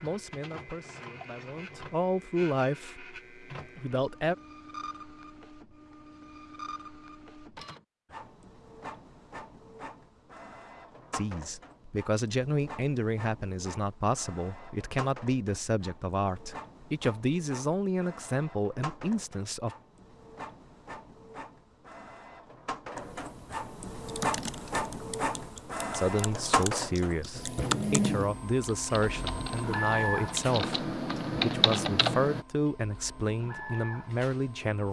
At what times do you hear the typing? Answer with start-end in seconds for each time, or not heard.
24.1-32.5.